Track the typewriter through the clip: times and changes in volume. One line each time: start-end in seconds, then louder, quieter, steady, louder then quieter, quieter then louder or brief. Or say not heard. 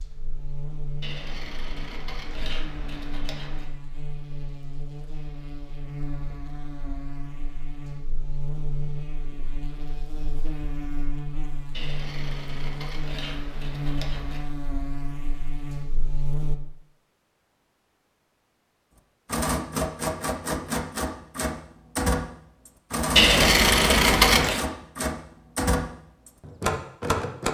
19.2-27.5 steady.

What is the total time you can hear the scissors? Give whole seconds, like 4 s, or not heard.
7 s.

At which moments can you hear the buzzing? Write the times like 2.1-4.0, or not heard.
0.0-16.6.